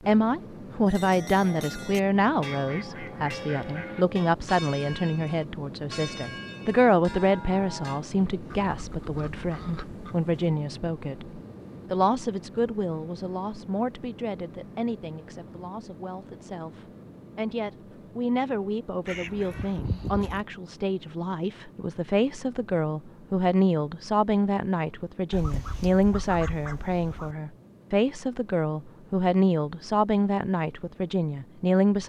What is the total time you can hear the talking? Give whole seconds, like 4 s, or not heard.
32 s.